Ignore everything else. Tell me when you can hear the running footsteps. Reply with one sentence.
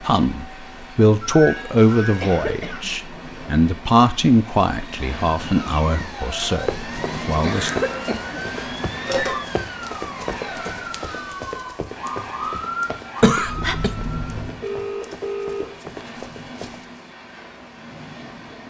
You can hear the running footsteps from 6.5 to 17.0 s.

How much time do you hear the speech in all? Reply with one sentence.
You can hear the speech for 8 seconds altogether.